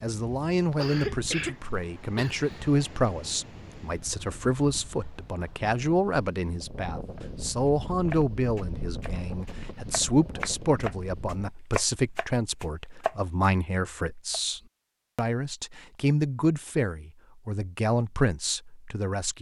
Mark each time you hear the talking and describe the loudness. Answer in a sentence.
You can hear the talking from 0.0 to 19.3 s, at a steady volume.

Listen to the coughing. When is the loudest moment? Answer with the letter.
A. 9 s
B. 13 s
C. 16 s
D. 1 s
D.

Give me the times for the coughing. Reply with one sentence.
The coughing can be heard from 0.7 to 2.6 s.